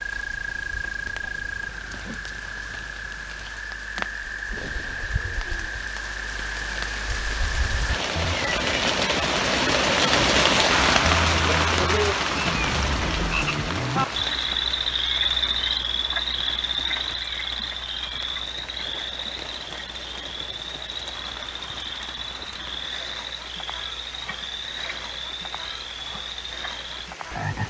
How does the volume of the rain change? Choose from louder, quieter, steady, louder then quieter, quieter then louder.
louder then quieter.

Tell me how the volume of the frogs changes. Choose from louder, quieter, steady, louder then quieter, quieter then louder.
louder then quieter.